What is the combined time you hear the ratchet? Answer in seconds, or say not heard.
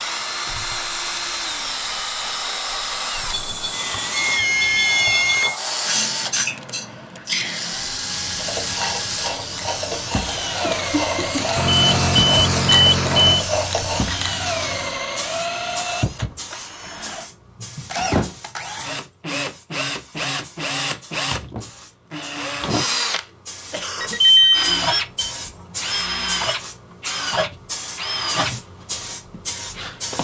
6 s.